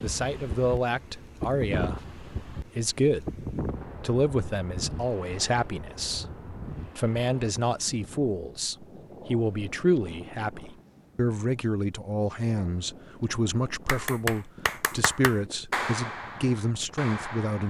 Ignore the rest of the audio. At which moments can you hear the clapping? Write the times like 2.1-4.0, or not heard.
13.8-17.6.